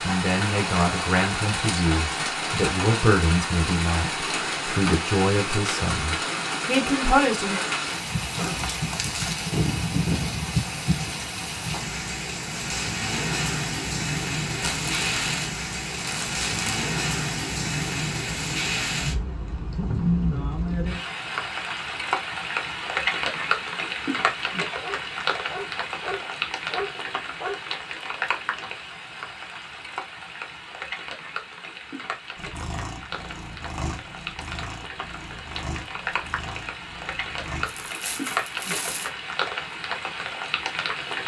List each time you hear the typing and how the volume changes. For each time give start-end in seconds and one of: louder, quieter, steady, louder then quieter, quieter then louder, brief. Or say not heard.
not heard.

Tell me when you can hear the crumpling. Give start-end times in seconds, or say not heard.
8.4-9.4, 14.5-16.8, 37.6-39.1.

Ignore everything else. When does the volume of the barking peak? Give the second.
27 s.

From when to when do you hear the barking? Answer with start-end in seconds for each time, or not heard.
24.8-27.6.